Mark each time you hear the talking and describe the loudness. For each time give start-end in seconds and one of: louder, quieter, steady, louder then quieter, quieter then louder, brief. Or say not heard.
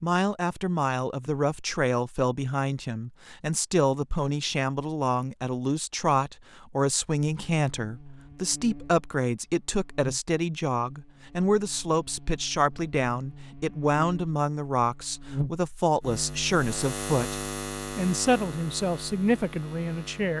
0.0-20.3 steady.